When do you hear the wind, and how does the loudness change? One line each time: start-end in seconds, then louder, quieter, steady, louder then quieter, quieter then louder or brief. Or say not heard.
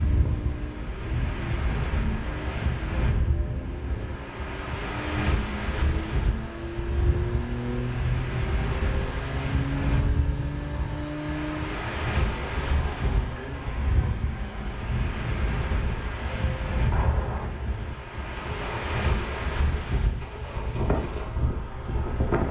0.0-22.4 steady.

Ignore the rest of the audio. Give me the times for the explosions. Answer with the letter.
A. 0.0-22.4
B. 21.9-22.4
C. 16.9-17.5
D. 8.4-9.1
C.